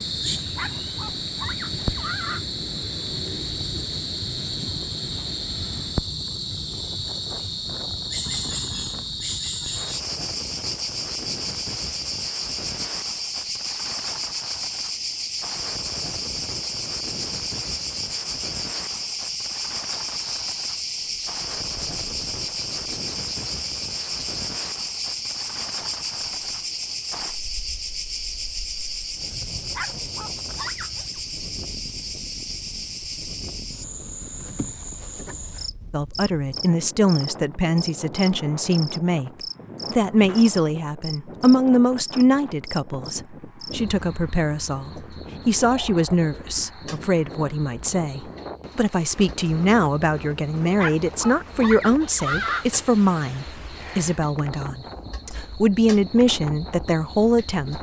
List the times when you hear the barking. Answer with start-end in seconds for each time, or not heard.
0.5-2.5, 29.7-31.2, 50.8-52.6.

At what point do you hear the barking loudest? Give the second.
52 s.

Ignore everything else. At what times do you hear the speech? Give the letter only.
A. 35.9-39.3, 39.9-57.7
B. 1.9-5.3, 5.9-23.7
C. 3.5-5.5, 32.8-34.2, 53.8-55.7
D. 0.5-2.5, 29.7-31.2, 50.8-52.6
A.